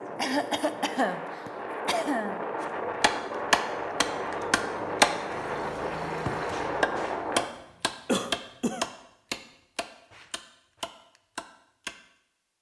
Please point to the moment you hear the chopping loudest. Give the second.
5 s.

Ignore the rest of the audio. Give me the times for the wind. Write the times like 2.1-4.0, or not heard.
0.0-7.5.